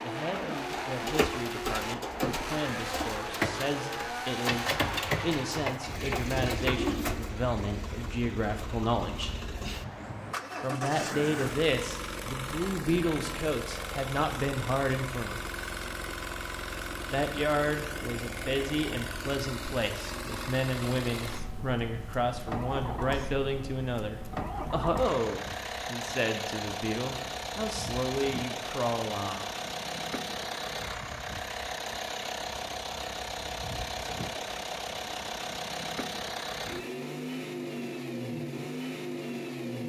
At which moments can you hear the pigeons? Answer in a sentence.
The pigeons can be heard from 0.3 to 7.3 s.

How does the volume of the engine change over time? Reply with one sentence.
The volume of the engine stays about the same.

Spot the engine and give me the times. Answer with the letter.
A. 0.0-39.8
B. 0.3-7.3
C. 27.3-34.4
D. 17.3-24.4
A.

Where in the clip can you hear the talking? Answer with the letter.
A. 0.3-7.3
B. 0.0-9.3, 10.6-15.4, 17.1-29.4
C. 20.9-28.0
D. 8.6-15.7
B.